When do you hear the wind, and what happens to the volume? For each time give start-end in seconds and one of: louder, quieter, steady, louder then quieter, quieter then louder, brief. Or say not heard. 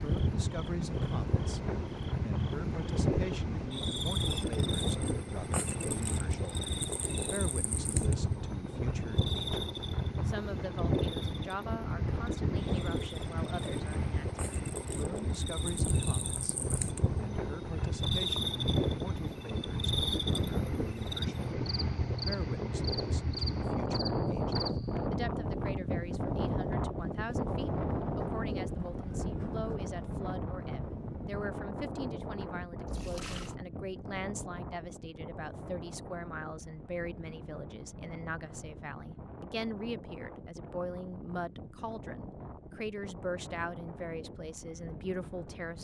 0.0-45.7 quieter.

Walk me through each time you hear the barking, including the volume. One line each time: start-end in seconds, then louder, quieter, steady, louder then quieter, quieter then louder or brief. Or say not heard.
not heard.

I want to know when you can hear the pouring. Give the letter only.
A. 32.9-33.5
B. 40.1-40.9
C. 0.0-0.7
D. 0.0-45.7
A.